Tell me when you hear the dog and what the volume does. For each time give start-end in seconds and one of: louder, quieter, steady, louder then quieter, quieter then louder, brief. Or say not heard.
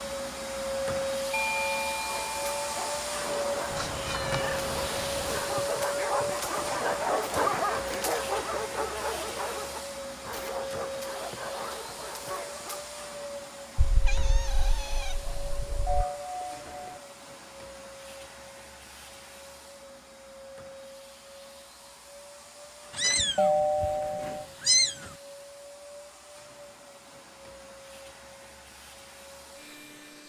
2.0-12.8 louder then quieter.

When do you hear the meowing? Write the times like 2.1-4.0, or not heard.
3.7-5.5, 13.8-16.1, 22.9-25.1.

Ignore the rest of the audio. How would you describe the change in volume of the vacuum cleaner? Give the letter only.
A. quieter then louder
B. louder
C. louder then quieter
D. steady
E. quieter
E.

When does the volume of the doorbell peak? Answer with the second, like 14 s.
24 s.